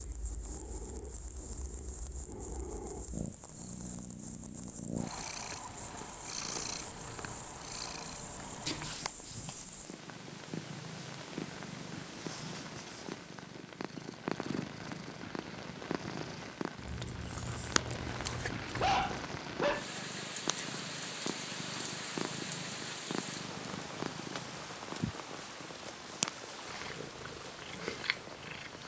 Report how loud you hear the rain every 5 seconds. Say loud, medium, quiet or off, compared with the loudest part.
medium, medium, medium, loud, loud, medium.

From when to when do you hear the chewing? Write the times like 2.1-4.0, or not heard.
16.8-19.2.